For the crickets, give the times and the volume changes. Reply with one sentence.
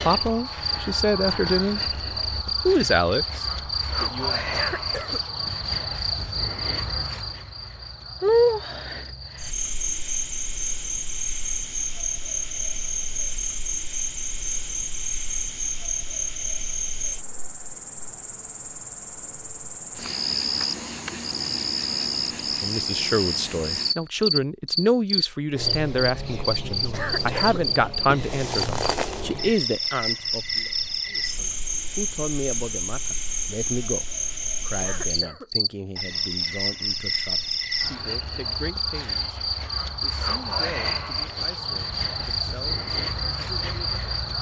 You can hear the crickets from 0.0 to 44.3 s, at a steady volume.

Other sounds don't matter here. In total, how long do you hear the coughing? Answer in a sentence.
The coughing can be heard for 2 seconds in total.